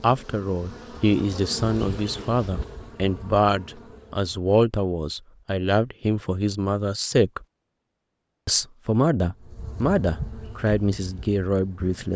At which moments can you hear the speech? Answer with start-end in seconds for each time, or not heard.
0.0-7.5, 8.4-12.1.